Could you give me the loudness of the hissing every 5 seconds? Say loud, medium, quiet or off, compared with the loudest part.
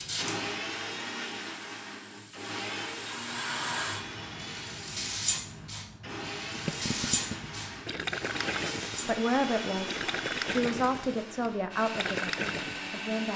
loud, loud, off.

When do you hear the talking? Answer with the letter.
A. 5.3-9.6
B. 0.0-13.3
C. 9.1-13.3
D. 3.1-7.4
C.